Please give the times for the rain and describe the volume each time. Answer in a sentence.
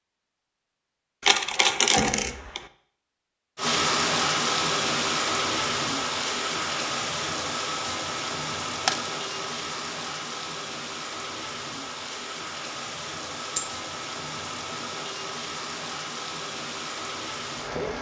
You can hear the rain from 3.5 to 17.9 s, getting quieter.